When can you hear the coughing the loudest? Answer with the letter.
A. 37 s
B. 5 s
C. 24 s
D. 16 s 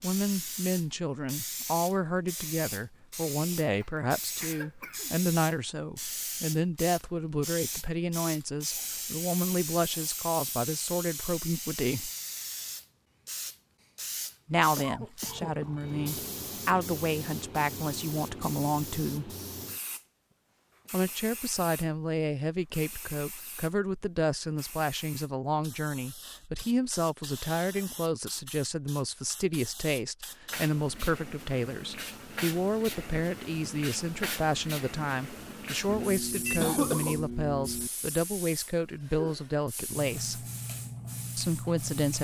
A.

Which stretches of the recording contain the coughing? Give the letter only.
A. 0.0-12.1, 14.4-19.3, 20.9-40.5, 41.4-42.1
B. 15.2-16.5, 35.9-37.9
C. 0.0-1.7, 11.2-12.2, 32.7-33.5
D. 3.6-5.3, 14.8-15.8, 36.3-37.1
D.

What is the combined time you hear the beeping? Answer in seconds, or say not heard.
3 s.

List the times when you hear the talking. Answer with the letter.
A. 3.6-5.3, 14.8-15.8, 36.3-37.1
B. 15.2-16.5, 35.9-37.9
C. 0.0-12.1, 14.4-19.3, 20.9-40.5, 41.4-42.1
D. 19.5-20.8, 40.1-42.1
C.